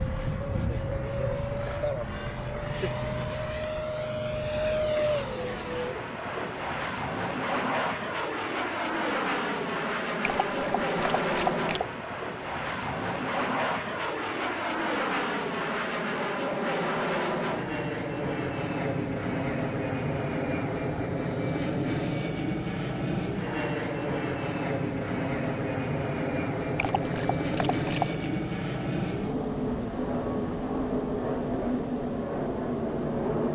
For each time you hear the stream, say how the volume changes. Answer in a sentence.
The stream can't be heard in this clip.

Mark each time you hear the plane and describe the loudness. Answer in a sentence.
You can hear the plane from 0.0 to 33.5 s, at a steady volume.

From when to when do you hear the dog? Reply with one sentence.
You can hear the dog from 10.2 to 11.9 s and from 26.8 to 28.2 s.